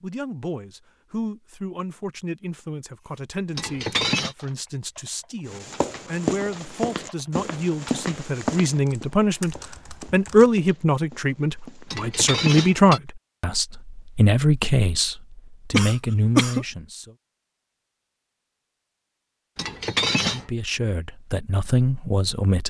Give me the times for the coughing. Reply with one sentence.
The coughing can be heard from 15.7 to 16.6 s.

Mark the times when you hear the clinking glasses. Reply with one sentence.
The clinking glasses can be heard from 3.5 to 4.3 s, from 11.9 to 13.0 s and from 19.6 to 20.4 s.